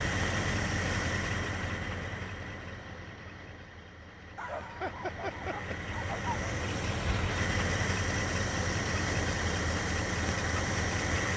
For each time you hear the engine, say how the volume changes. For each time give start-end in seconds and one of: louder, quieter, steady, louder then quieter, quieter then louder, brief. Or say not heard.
0.0-11.3 quieter then louder.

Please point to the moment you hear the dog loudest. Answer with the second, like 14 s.
5 s.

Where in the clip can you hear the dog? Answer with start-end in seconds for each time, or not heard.
4.3-6.2.